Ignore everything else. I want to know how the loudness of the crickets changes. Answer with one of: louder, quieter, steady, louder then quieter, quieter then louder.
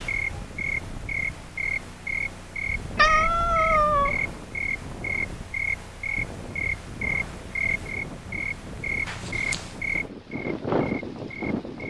steady.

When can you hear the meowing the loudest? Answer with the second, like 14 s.
3 s.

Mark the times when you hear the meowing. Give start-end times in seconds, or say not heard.
3.0-4.2, 9.1-9.8.